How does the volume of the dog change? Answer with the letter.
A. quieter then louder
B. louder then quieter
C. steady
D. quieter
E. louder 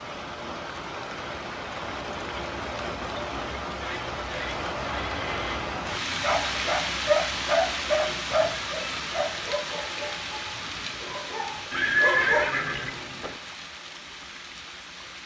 A.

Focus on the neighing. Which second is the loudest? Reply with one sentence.
The loudest moment of the neighing is at 12 seconds.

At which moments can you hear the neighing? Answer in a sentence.
You can hear the neighing from 3.8 to 5.6 s and from 11.7 to 13.3 s.